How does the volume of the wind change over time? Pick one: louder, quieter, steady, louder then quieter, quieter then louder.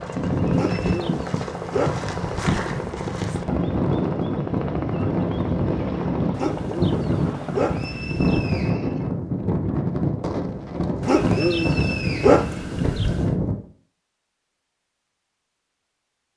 steady.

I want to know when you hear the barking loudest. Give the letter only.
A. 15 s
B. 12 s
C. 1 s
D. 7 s
B.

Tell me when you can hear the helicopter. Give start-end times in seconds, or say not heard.
0.0-8.3.